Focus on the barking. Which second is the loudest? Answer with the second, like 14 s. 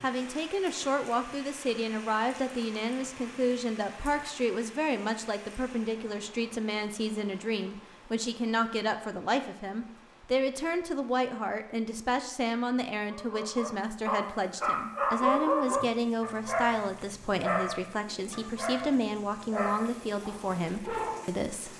15 s.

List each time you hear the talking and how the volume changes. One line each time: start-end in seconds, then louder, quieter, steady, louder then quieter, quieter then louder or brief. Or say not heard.
0.0-21.7 steady.